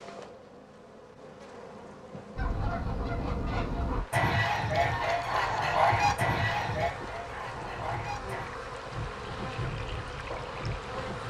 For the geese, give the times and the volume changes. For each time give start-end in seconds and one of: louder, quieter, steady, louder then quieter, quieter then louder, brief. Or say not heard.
2.4-8.5 louder then quieter.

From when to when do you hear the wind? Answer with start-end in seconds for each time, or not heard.
4.7-11.2.